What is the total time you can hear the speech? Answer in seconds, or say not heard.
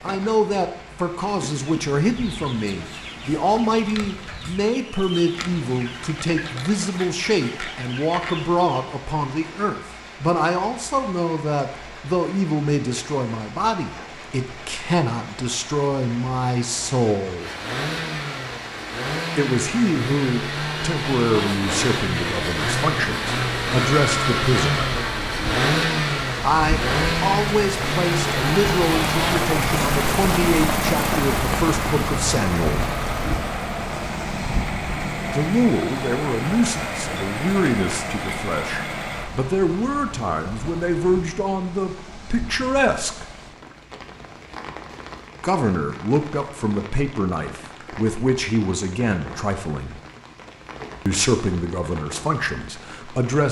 44 s.